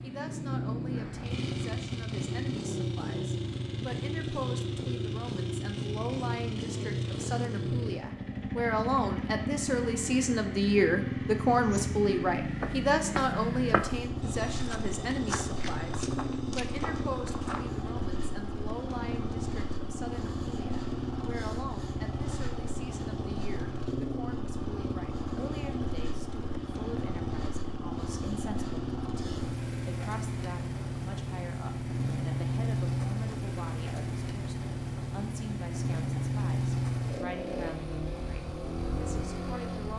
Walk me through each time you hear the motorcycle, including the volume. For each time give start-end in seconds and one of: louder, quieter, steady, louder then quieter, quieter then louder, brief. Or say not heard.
0.0-39.9 steady.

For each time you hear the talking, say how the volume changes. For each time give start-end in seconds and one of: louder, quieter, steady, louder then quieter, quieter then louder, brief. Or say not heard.
0.0-39.9 louder then quieter.